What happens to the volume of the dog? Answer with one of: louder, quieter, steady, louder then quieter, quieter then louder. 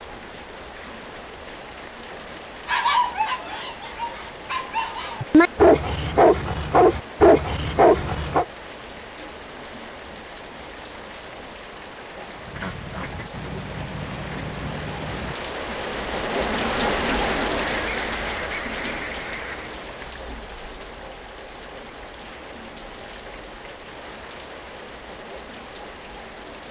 louder.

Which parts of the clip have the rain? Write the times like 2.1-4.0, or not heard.
0.0-26.6.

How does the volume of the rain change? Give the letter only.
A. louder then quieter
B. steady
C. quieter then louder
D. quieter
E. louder
A.